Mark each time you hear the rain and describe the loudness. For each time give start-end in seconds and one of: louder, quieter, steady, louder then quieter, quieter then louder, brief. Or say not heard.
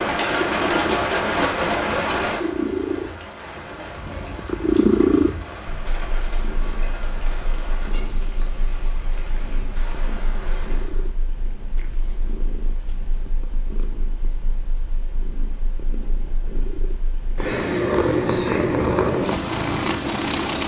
0.0-11.2 quieter.